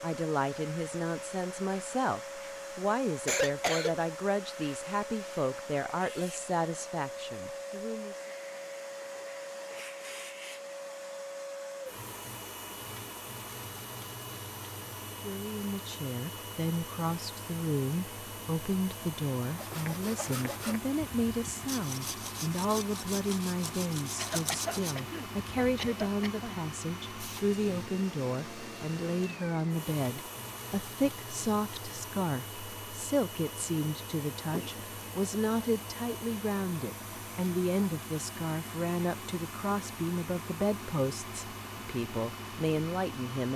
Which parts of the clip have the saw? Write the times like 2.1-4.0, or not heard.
19.5-25.8.